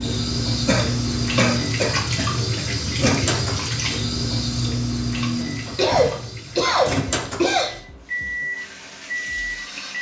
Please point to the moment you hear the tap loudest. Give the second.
2 s.